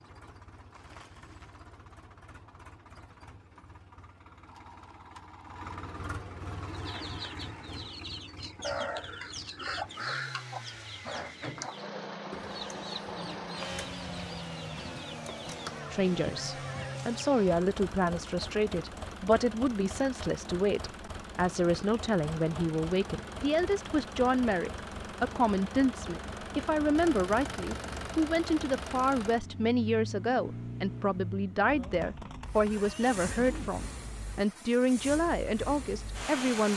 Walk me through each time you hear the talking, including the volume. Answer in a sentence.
The talking can be heard from 15.9 to 36.7 s, at a steady volume.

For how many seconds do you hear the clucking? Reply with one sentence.
You can hear the clucking for 11 seconds altogether.